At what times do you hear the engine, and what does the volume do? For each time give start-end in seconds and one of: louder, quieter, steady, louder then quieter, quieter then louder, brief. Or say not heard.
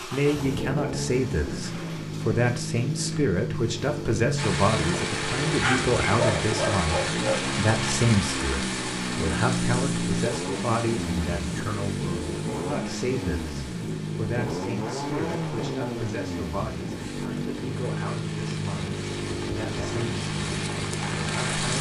0.0-21.7 steady.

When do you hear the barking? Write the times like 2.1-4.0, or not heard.
5.5-7.5.